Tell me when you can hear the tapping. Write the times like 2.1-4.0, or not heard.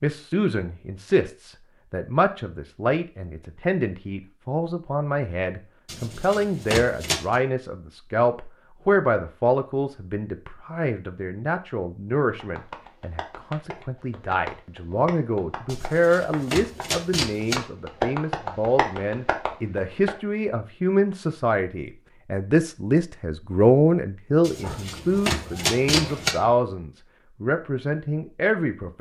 12.3-20.1.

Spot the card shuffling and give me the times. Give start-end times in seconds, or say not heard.
5.8-7.3, 15.7-17.6, 24.4-26.4.